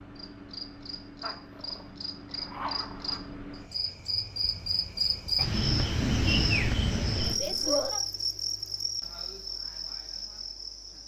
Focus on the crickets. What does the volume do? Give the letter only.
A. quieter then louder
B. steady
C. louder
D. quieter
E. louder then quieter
E.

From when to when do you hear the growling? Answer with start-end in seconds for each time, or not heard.
1.2-3.2, 6.0-8.0.